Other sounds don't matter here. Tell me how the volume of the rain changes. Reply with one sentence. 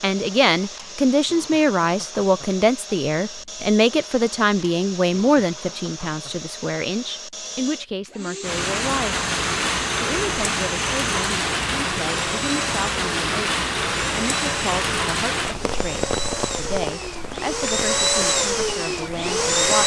The volume of the rain goes down.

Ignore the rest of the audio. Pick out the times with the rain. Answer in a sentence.
You can hear the rain from 8.4 to 19.8 s.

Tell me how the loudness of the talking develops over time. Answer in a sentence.
The volume of the talking goes down.